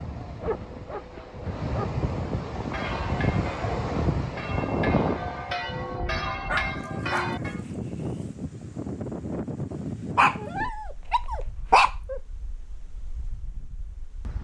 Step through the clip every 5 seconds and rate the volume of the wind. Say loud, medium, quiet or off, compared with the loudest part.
loud, loud, quiet.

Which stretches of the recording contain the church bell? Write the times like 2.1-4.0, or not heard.
2.5-7.7.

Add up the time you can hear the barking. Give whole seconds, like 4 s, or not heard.
5 s.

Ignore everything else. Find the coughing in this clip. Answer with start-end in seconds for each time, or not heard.
not heard.